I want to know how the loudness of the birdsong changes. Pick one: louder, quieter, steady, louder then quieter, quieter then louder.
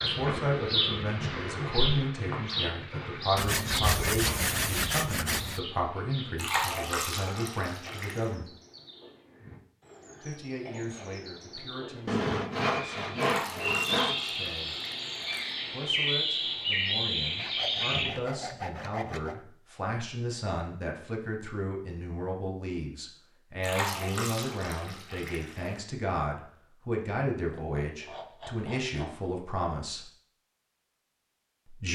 quieter then louder.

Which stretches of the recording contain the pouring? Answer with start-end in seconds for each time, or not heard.
6.3-8.3, 13.2-15.6, 23.6-25.8.